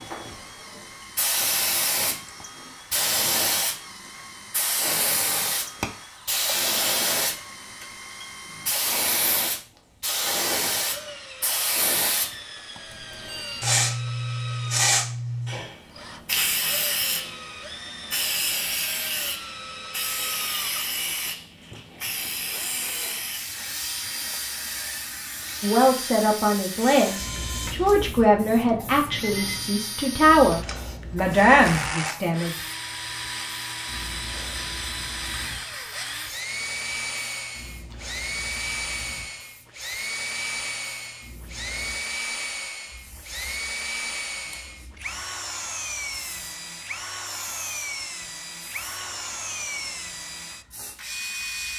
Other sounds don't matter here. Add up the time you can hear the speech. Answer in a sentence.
The speech can be heard for 7 seconds in total.